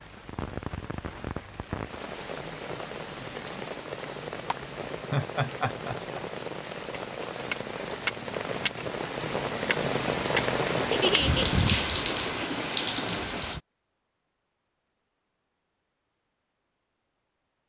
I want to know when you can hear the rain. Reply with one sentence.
The rain can be heard from 0.0 to 13.6 s.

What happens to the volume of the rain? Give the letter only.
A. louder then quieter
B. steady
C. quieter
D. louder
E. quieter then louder
D.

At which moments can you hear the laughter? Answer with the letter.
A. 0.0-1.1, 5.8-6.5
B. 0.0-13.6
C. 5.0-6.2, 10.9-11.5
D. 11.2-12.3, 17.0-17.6
C.